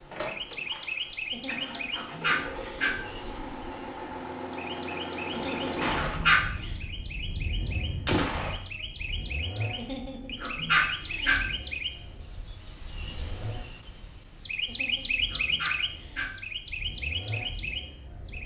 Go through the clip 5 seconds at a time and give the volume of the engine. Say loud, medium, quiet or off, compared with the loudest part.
loud, loud, medium, medium.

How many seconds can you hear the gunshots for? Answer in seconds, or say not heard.
3 s.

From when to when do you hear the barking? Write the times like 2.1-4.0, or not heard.
1.3-3.0, 5.3-6.7, 9.8-11.4, 14.7-16.3.